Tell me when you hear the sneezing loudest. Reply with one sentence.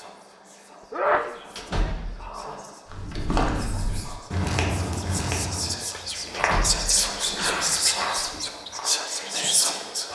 The loudest moment of the sneezing is at 1 second.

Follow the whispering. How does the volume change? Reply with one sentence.
The loudness of the whispering goes up.